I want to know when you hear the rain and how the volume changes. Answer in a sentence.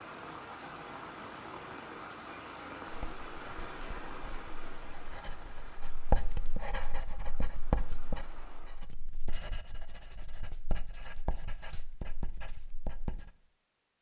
You can hear the rain from 0.0 to 8.8 s, getting quieter.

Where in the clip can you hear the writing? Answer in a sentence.
The writing can be heard from 2.9 to 13.3 s.